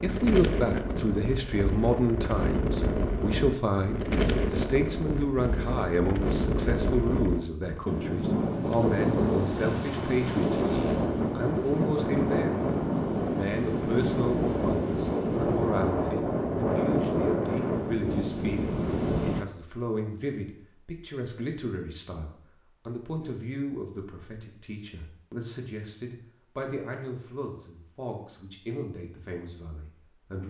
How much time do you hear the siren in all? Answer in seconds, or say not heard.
not heard.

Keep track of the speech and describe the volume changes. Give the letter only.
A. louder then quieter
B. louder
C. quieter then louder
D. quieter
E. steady
D.